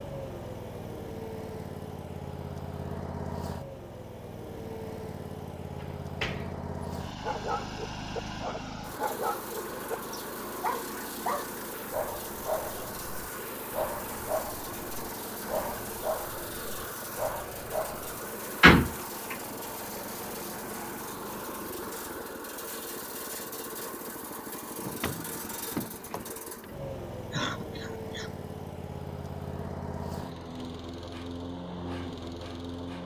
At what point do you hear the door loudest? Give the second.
19 s.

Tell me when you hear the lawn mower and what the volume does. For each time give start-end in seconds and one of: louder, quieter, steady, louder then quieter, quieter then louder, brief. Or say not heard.
0.0-33.0 steady.